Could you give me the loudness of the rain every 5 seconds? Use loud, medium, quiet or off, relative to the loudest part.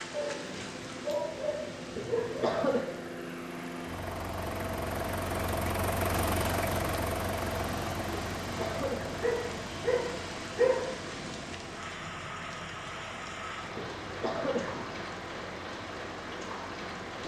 medium, loud, loud, loud.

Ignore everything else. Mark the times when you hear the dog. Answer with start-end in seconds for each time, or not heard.
0.1-2.5, 9.2-10.8.